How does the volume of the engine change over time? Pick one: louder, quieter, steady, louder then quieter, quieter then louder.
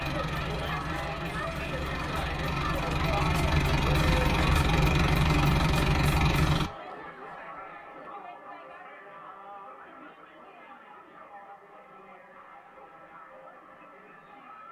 louder.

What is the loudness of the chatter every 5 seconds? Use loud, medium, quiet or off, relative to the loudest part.
loud, medium, quiet.